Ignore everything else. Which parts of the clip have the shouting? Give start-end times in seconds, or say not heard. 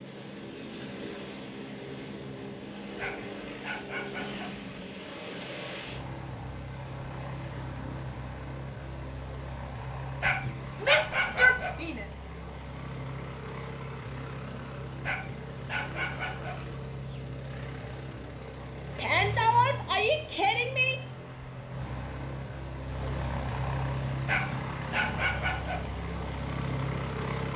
10.8-12.1, 18.9-20.9.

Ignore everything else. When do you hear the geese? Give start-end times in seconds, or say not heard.
not heard.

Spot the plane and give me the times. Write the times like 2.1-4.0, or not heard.
0.0-27.5.